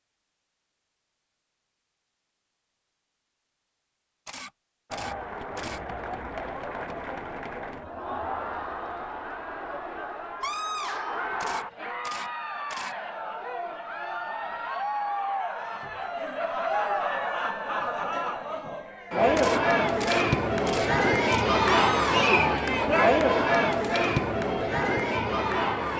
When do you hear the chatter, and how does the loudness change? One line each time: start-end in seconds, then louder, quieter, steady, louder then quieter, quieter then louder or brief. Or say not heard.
4.9-25.9 louder.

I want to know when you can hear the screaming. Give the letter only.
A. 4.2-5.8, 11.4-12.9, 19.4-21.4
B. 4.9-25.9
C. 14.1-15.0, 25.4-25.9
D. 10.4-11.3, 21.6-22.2
D.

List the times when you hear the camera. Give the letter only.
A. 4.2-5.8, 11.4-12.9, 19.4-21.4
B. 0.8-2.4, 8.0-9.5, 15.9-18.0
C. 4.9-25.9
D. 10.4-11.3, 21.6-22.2
A.